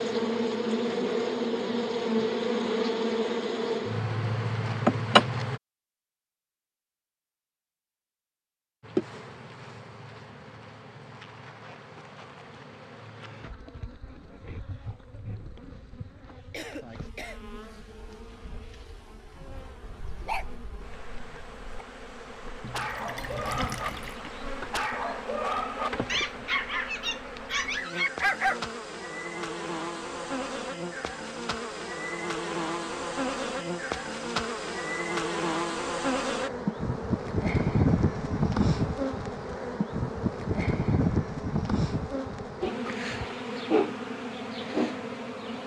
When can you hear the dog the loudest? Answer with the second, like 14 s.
28 s.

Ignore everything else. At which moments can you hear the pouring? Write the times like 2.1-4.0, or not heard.
22.6-24.2.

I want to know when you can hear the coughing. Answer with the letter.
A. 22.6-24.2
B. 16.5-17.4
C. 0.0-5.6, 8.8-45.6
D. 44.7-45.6
B.